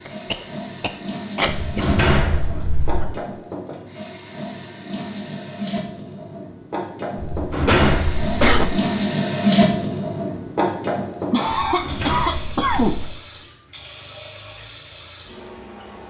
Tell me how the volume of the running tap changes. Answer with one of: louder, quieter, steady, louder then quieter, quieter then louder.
louder then quieter.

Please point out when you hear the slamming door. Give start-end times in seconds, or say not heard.
1.4-3.0, 7.2-8.7, 11.6-13.1.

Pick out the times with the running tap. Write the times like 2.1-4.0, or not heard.
0.0-16.0.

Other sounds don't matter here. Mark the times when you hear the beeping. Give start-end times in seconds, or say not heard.
not heard.